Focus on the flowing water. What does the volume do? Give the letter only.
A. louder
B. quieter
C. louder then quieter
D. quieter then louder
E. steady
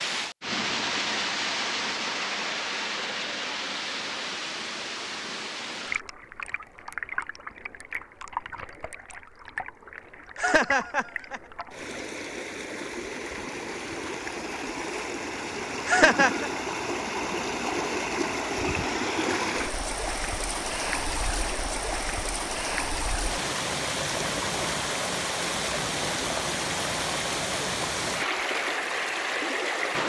D.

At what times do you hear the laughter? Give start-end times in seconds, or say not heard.
10.3-11.4, 15.8-16.5.